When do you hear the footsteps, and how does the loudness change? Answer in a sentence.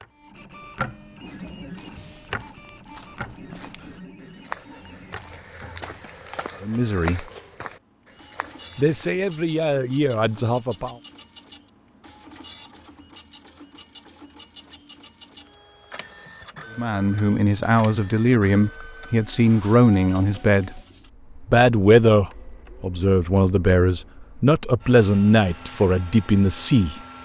The footsteps can be heard from 1.2 to 9.1 s, getting louder then quieter.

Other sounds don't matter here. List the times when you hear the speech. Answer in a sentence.
You can hear the speech from 6.6 to 7.2 s, from 8.8 to 10.9 s, from 16.8 to 20.8 s and from 21.4 to 27.0 s.